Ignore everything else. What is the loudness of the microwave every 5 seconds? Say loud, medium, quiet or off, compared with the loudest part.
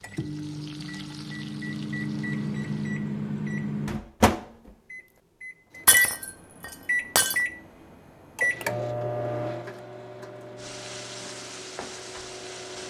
loud, loud, quiet.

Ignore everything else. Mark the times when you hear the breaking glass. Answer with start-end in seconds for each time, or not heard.
5.8-7.4.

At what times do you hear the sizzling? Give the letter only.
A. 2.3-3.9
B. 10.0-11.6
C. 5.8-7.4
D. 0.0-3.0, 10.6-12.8
D.